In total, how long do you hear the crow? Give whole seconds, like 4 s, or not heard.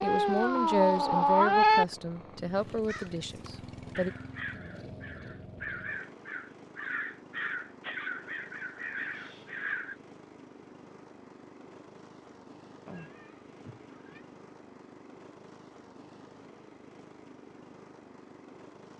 7 s.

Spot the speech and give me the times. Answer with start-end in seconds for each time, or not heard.
0.0-4.1.